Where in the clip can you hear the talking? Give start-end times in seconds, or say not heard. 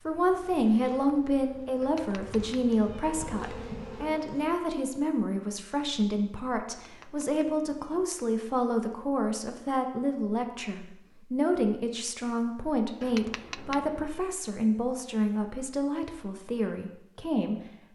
0.1-17.6.